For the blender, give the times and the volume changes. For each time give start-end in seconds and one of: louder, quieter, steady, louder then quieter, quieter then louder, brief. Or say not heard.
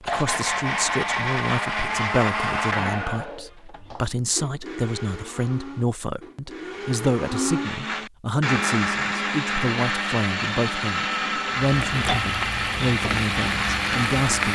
0.0-14.4 quieter then louder.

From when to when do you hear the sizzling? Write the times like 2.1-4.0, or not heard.
11.8-14.4.